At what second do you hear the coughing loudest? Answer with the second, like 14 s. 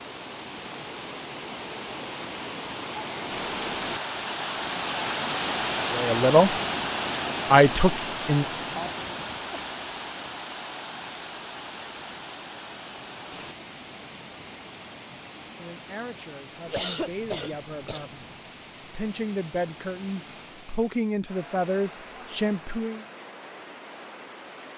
17 s.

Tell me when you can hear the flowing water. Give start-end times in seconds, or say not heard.
0.0-24.7.